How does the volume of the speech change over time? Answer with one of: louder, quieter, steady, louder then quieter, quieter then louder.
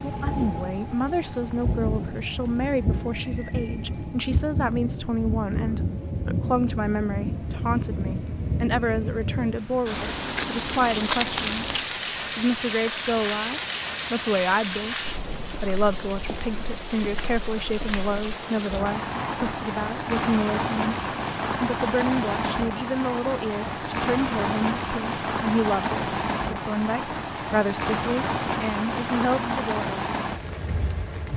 steady.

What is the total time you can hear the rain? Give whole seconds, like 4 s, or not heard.
31 s.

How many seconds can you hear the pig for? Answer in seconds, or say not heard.
not heard.